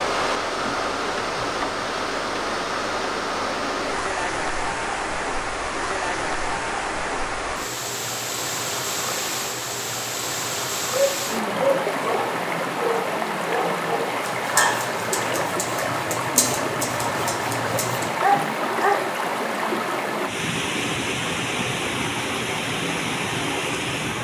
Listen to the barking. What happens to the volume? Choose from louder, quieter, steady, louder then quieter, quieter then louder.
quieter then louder.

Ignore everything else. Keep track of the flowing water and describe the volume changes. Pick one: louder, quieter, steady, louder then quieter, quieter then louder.
steady.